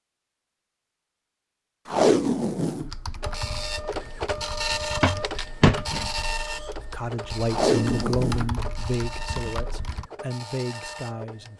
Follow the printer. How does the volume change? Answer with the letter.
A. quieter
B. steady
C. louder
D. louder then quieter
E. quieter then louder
A.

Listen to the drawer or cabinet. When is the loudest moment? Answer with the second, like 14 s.
6 s.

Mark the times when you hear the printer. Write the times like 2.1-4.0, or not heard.
3.2-11.5.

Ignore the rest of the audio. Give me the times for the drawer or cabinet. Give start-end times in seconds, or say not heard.
4.2-6.0.